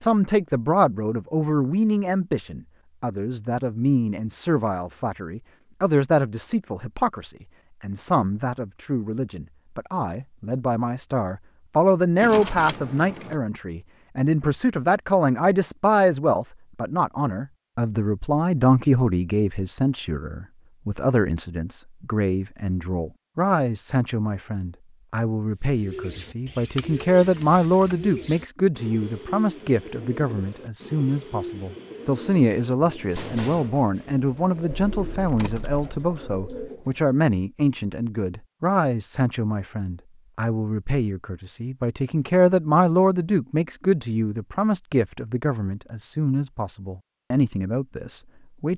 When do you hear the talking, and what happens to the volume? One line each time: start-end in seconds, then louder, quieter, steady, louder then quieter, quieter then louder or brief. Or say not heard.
0.0-48.7 steady.